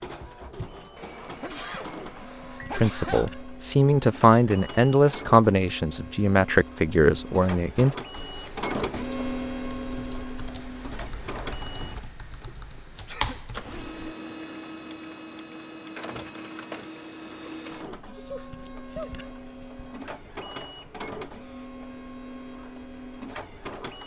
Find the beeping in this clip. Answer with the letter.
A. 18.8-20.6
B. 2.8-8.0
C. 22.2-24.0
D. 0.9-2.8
D.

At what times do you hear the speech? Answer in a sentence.
The speech can be heard from 2.8 to 8.0 s.